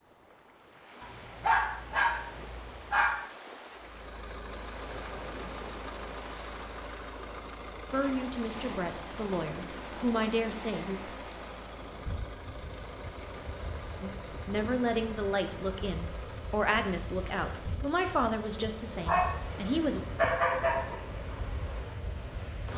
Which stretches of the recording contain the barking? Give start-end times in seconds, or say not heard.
1.0-3.1, 19.1-20.9.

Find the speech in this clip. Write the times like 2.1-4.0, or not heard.
7.9-11.0, 14.0-20.1.